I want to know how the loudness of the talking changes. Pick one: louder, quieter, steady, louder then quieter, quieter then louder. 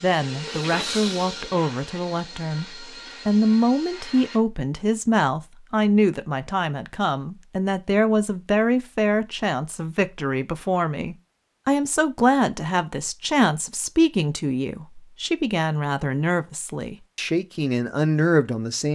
steady.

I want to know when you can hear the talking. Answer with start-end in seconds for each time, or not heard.
0.0-18.9.